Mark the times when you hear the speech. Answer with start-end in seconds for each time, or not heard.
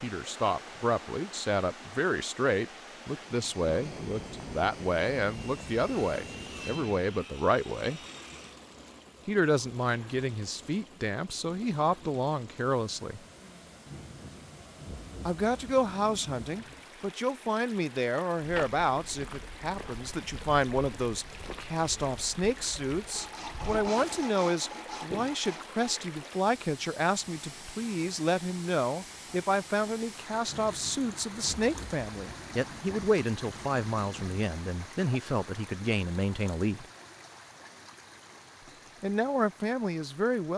0.0-8.0, 9.2-13.2, 15.2-36.9, 39.0-40.5.